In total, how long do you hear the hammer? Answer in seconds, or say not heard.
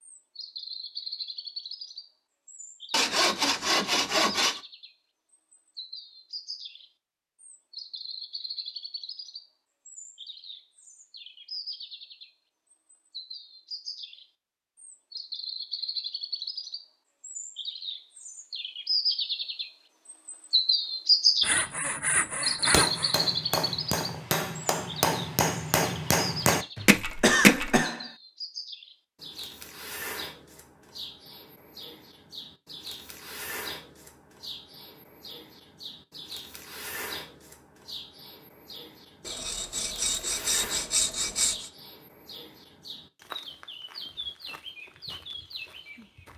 5 s.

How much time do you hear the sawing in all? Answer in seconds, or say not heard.
6 s.